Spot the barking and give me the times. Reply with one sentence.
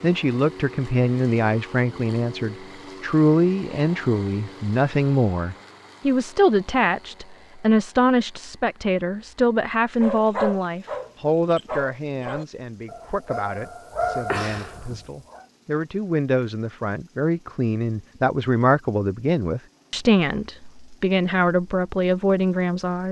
You can hear the barking from 10.0 to 15.4 s.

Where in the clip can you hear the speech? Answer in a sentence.
The speech can be heard from 0.0 to 23.0 s.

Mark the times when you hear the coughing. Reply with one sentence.
The coughing can't be heard in this clip.